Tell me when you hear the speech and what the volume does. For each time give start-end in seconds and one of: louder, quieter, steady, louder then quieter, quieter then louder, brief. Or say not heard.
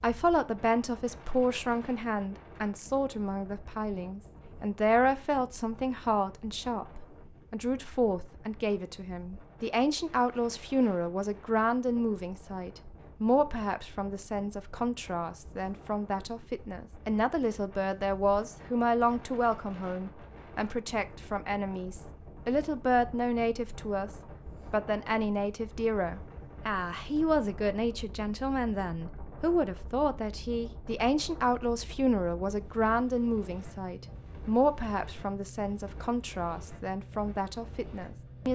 0.0-38.4 steady.